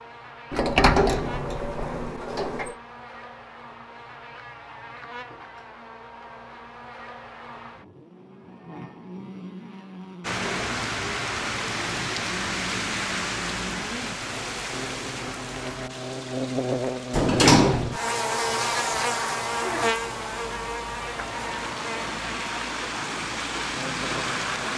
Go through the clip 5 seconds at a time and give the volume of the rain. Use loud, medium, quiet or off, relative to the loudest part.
off, off, loud, medium, loud.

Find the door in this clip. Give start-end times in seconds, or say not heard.
0.5-2.8, 17.1-18.0.